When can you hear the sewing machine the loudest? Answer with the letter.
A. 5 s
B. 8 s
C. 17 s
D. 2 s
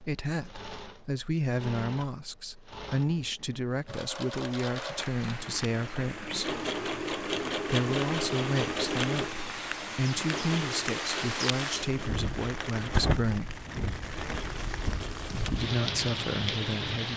B.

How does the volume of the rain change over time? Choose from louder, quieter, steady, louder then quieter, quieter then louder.
louder.